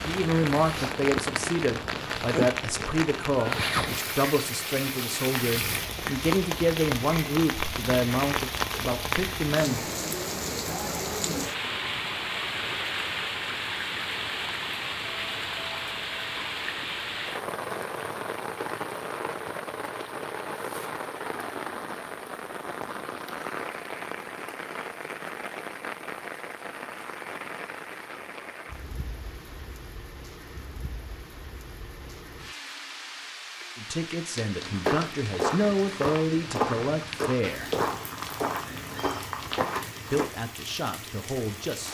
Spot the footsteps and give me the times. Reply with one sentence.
The footsteps can be heard from 34.6 to 40.2 s.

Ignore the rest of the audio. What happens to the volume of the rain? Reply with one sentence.
The loudness of the rain goes down.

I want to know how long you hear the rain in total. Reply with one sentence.
You can hear the rain for 42 seconds altogether.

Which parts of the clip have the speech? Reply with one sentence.
The speech can be heard from 0.0 to 9.8 s, from 33.8 to 37.7 s and from 40.1 to 41.9 s.